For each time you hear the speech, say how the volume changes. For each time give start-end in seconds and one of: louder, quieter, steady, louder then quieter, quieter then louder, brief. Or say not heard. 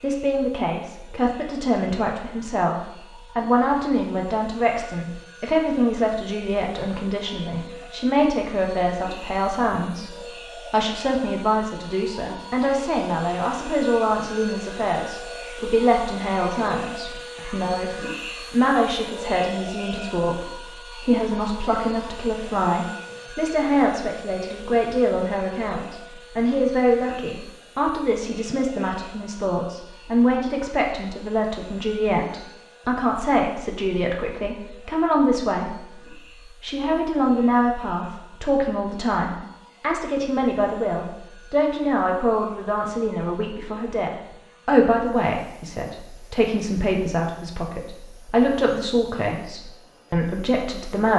0.0-51.1 steady.